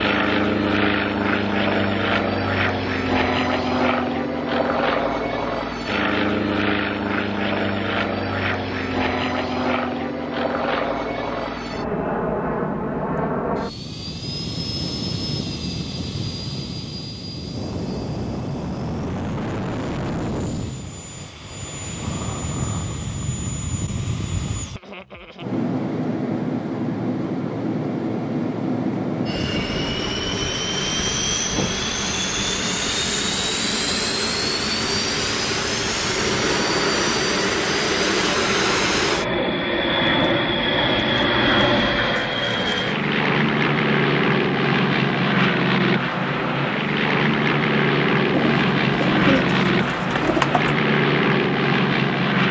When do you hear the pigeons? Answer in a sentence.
The pigeons can be heard from 48.3 to 50.8 s.